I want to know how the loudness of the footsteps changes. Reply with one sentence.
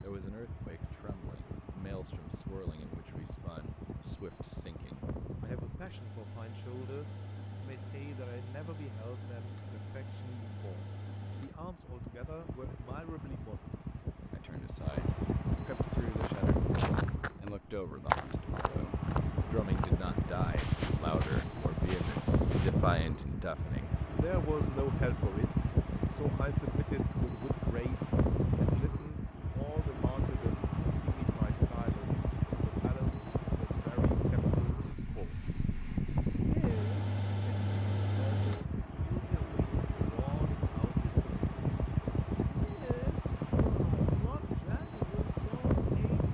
The loudness of the footsteps goes up, then down.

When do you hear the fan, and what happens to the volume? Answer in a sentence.
The fan can be heard from 0.0 to 46.2 s, getting louder.